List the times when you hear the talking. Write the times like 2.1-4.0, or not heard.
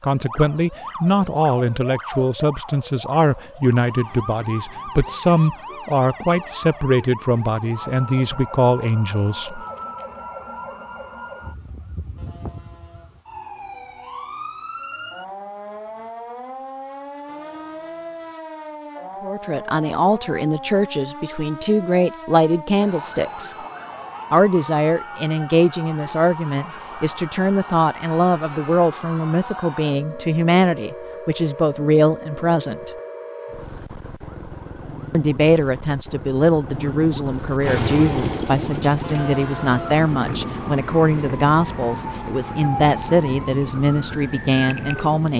0.0-9.6, 19.2-23.6, 24.3-32.9, 35.1-45.3.